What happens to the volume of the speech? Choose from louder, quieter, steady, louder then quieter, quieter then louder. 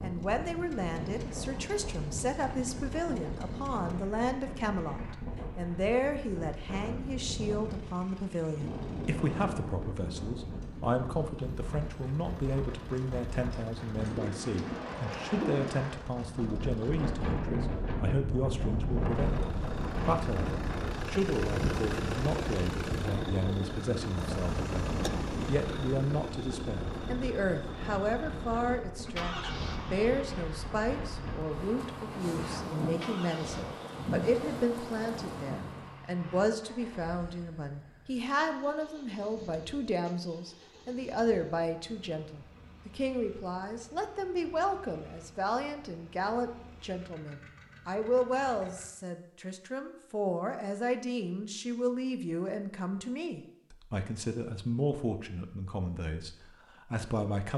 steady.